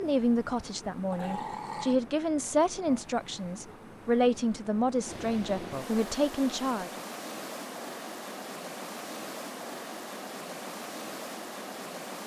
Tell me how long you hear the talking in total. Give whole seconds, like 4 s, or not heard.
7 s.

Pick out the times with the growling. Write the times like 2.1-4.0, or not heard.
1.1-2.0.